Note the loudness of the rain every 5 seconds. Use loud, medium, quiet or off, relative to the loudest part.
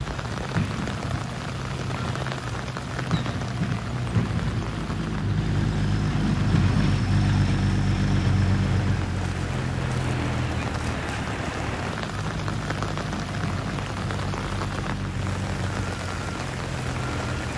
loud, medium, loud, loud.